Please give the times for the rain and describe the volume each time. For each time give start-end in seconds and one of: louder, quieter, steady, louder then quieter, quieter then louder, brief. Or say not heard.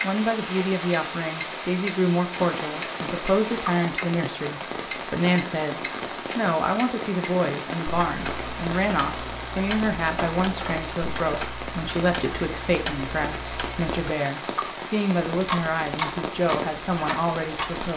0.0-17.9 steady.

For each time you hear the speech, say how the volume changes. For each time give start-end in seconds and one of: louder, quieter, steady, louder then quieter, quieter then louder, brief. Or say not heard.
0.0-17.9 steady.